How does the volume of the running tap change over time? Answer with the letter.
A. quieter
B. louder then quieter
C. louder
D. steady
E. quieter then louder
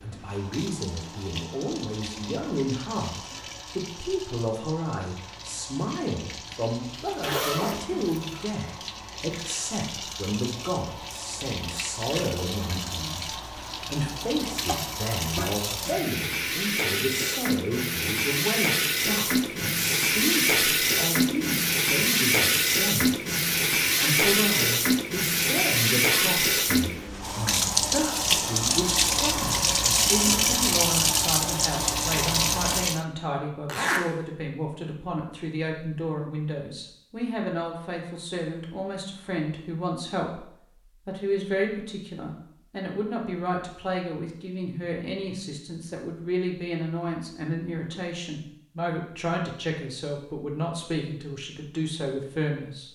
C.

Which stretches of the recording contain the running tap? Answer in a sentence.
You can hear the running tap from 0.0 to 33.0 s.